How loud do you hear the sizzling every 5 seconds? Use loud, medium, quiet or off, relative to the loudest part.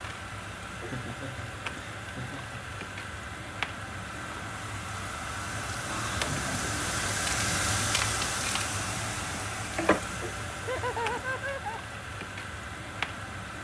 medium, loud, medium.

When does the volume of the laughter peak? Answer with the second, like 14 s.
11 s.